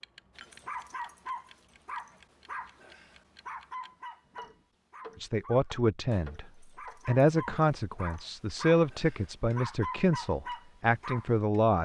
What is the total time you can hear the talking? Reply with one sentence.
The talking can be heard for 6 seconds in total.